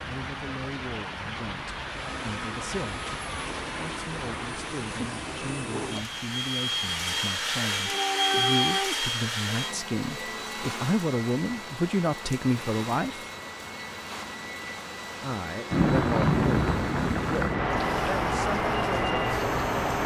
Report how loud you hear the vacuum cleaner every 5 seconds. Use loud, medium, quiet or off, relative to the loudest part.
medium, loud, medium, medium.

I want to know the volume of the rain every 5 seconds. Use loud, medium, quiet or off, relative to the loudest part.
medium, medium, quiet, loud.